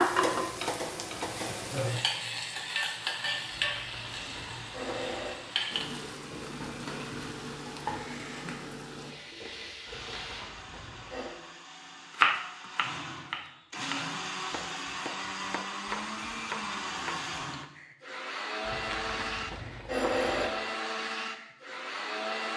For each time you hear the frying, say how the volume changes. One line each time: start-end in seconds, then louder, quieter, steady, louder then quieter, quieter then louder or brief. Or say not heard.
0.0-10.5 quieter.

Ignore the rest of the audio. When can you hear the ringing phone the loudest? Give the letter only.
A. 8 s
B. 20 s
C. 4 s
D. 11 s
B.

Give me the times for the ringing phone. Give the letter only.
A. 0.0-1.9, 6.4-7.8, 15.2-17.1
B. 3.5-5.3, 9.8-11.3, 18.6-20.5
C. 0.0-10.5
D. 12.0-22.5
B.